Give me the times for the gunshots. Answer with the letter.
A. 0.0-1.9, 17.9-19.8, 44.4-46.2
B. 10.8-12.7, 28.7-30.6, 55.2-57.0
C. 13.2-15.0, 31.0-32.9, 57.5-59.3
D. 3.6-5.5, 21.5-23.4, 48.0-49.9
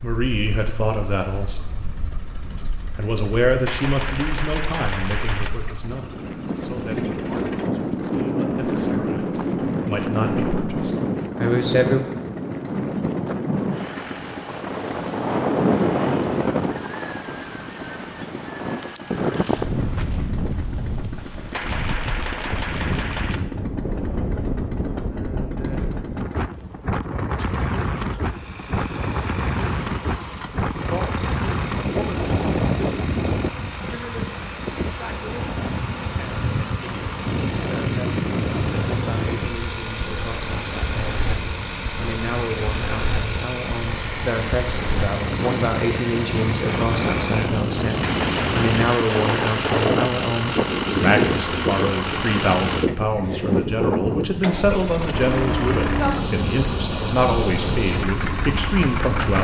D.